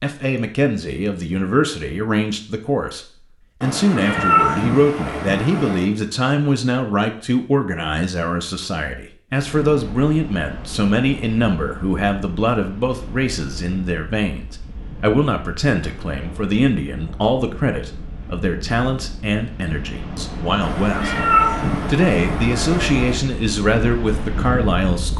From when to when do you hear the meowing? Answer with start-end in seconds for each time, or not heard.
3.6-5.9, 20.6-23.1.